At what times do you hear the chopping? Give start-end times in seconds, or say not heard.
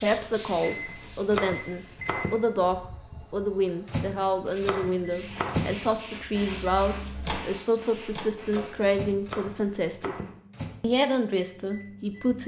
0.8-2.5, 4.2-5.8, 9.1-10.4.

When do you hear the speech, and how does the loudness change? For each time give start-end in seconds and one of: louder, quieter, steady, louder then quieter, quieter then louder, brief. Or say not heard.
0.0-10.2 steady
10.8-12.4 brief.